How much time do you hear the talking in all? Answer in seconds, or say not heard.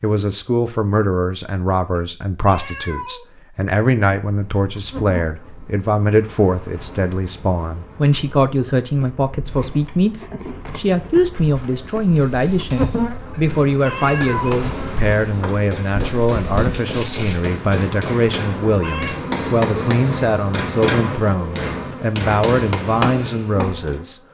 24 s.